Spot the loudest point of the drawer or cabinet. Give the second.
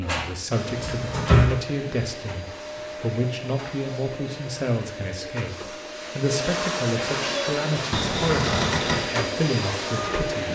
1 s.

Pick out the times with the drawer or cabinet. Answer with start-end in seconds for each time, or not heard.
0.0-1.6, 7.9-9.1.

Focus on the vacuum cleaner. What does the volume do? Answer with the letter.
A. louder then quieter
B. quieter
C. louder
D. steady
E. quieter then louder
C.